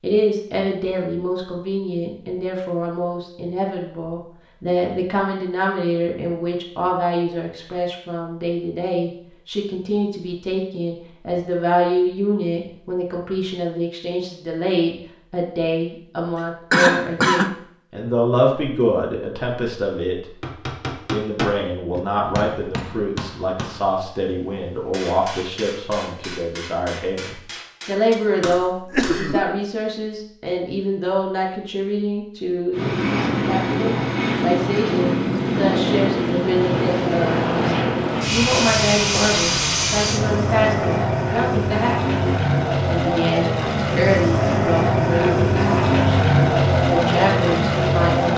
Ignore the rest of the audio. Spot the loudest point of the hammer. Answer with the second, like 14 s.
21 s.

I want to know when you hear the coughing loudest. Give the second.
17 s.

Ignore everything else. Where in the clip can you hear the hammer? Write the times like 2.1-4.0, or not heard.
20.4-29.2.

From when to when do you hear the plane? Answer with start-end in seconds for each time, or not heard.
32.7-48.3.